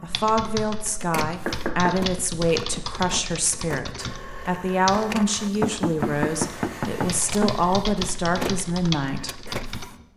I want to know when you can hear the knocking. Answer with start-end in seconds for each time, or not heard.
1.4-3.5, 5.6-7.5.